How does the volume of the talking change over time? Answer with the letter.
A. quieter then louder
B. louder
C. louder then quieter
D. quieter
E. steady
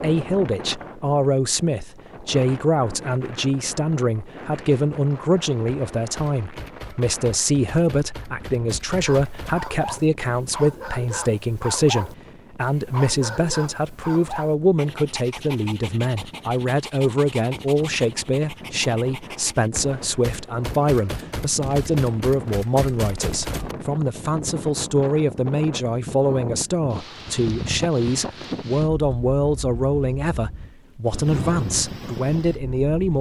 E.